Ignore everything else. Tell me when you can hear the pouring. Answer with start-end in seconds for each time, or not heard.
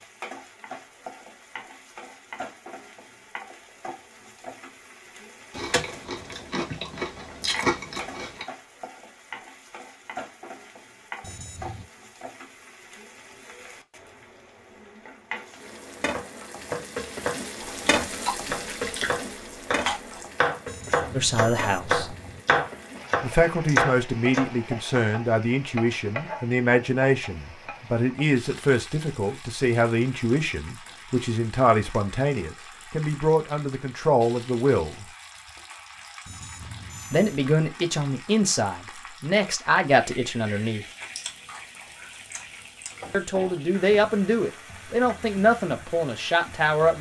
not heard.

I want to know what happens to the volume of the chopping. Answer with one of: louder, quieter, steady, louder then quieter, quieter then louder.
louder.